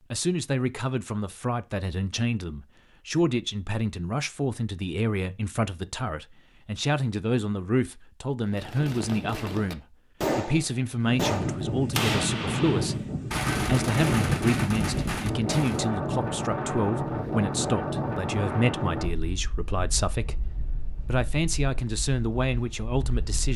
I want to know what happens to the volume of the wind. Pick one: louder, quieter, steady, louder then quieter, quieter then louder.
quieter.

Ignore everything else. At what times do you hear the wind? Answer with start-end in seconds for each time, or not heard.
11.1-23.5.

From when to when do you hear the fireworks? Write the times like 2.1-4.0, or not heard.
8.5-15.8.